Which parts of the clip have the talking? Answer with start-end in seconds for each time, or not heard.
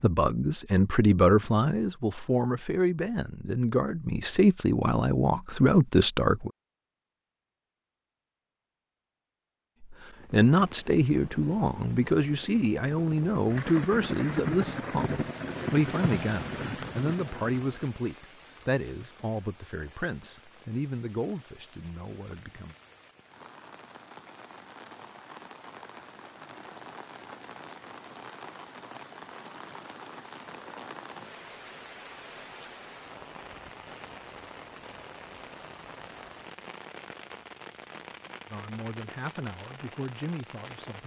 0.0-6.5, 9.9-22.8, 38.5-41.0.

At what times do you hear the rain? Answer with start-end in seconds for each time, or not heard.
10.2-41.0.